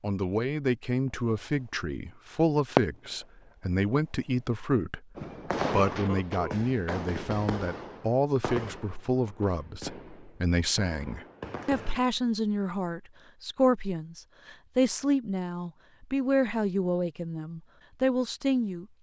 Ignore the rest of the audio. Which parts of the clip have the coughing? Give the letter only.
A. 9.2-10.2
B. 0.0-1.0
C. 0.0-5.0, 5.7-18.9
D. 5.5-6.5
D.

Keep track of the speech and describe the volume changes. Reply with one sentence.
The volume of the speech stays about the same.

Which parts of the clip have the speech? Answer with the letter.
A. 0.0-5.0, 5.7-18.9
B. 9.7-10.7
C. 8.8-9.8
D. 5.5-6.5
A.